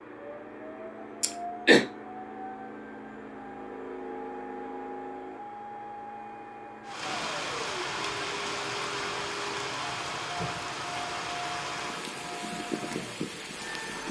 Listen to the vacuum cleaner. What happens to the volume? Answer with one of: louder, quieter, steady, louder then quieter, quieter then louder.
steady.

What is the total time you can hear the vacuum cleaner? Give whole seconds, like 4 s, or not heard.
14 s.